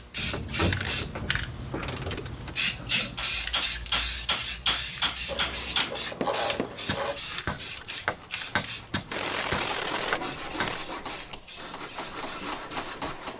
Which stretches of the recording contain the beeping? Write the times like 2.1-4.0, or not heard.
not heard.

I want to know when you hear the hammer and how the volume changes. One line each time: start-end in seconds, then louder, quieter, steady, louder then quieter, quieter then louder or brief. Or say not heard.
3.1-13.3 quieter.